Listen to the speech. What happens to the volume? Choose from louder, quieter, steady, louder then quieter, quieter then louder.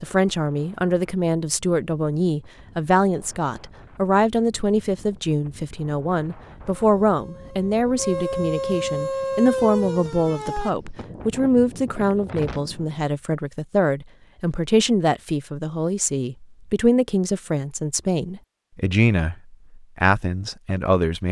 steady.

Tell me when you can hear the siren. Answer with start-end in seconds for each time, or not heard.
6.8-10.8.